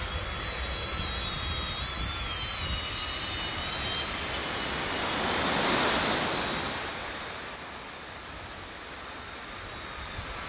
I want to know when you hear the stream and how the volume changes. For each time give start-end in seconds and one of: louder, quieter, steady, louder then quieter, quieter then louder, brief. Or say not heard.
2.9-10.4 louder then quieter.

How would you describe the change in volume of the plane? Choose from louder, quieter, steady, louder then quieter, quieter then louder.
quieter.